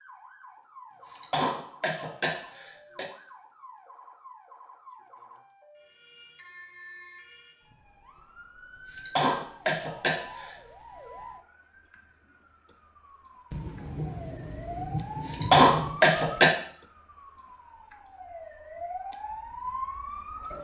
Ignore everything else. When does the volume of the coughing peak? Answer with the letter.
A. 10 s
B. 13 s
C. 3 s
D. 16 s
D.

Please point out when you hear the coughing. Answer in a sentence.
The coughing can be heard from 0.9 to 3.0 s, from 8.8 to 10.6 s and from 15.1 to 16.6 s.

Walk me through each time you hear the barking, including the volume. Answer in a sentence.
You can't hear the barking here.